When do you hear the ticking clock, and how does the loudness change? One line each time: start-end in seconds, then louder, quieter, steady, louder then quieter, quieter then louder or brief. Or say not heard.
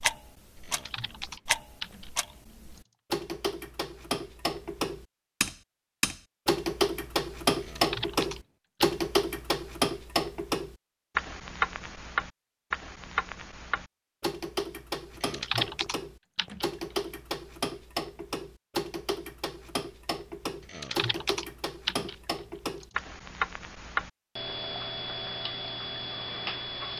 0.0-26.9 louder then quieter.